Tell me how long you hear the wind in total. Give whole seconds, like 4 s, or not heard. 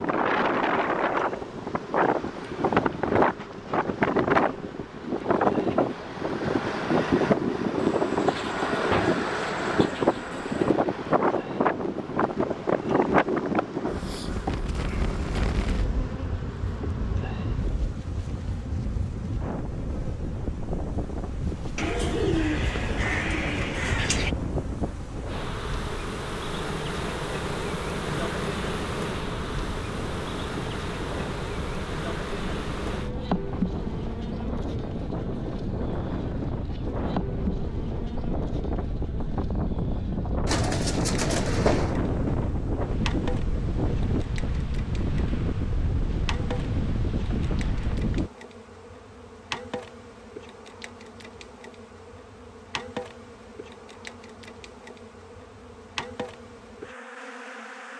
48 s.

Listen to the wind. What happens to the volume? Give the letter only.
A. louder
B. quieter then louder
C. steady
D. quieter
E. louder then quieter
B.